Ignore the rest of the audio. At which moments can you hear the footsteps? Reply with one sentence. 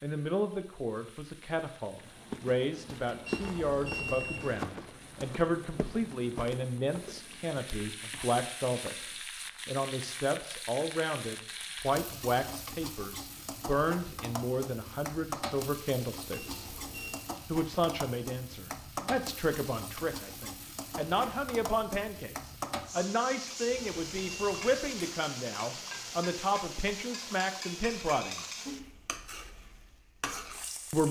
The footsteps can be heard from 2.0 to 9.2 s.